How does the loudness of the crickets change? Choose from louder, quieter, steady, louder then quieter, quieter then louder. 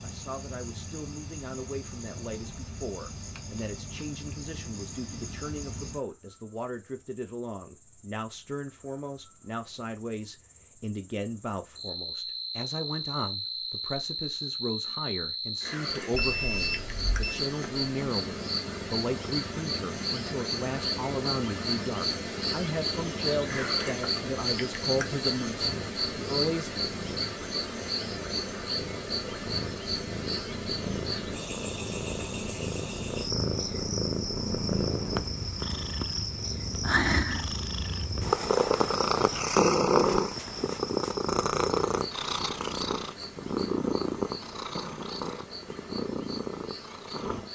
louder then quieter.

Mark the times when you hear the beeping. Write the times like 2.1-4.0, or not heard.
16.1-17.4.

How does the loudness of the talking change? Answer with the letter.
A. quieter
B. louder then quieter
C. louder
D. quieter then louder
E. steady
C.